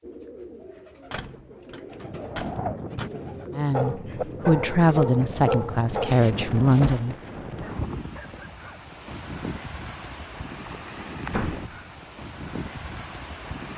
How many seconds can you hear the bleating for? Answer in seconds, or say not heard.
not heard.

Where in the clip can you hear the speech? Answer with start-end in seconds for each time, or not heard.
3.5-7.2.